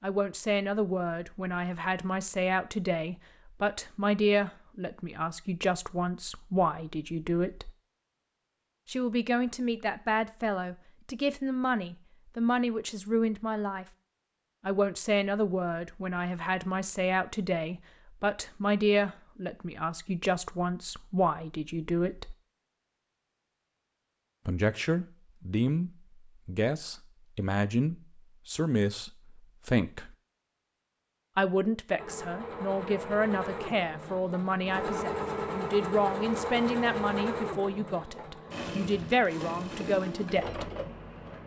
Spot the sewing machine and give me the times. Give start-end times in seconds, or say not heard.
31.9-41.4.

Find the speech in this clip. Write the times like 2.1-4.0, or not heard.
0.0-7.7, 8.8-13.8, 14.7-22.4, 24.4-30.1, 31.4-40.7.